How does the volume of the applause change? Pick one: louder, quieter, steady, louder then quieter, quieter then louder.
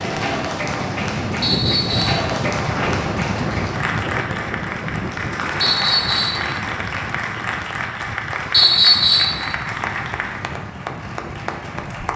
steady.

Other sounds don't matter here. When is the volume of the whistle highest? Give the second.
9 s.